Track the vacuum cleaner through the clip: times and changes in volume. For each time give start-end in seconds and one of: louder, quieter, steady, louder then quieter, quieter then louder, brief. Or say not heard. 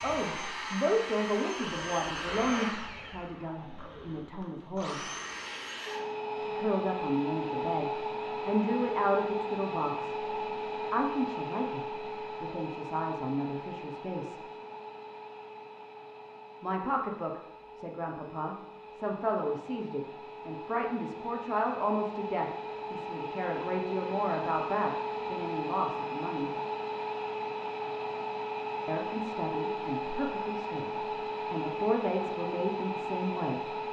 0.0-33.8 quieter then louder.